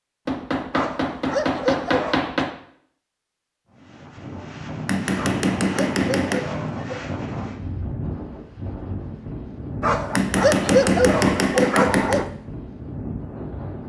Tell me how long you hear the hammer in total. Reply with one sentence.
You can hear the hammer for 6 seconds altogether.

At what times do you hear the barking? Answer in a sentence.
You can hear the barking from 0.7 to 2.2 s, from 5.2 to 7.0 s and from 9.8 to 12.3 s.